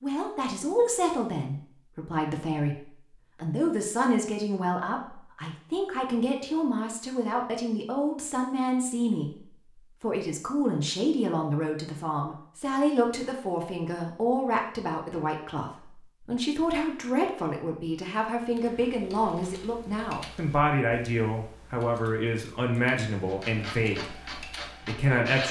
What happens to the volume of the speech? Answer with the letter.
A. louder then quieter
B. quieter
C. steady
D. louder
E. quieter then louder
C.